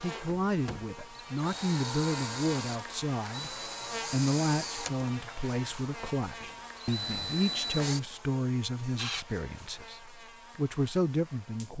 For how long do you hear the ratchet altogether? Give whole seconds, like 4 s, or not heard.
not heard.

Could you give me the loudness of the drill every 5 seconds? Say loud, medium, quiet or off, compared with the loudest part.
loud, loud, off.